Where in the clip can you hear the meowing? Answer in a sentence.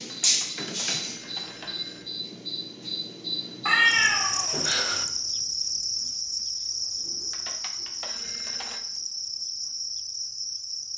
You can hear the meowing from 3.6 to 5.0 s.